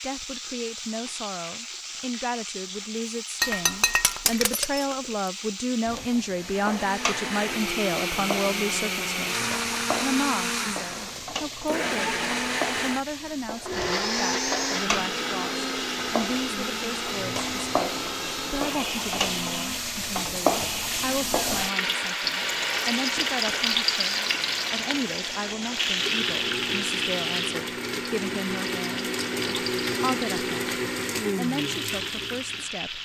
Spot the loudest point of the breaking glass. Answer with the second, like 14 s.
4 s.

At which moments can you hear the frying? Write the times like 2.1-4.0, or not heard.
0.0-33.0.